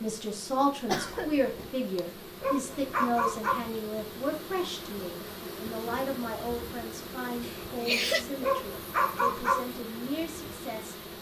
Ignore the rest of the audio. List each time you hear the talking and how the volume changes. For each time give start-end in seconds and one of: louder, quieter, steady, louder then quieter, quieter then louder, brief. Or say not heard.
0.0-10.9 quieter.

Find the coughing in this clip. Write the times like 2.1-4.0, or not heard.
0.8-1.7, 7.4-8.2.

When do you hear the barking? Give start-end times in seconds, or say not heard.
2.4-3.6, 8.4-9.7.